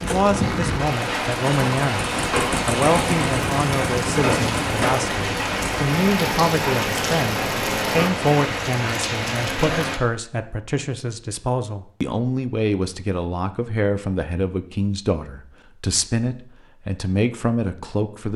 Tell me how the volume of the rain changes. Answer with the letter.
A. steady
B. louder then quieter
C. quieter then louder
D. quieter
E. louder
A.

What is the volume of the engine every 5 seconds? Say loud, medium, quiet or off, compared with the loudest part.
loud, loud, off, off.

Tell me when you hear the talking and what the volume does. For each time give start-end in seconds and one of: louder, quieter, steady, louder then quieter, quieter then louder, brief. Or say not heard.
0.0-18.3 steady.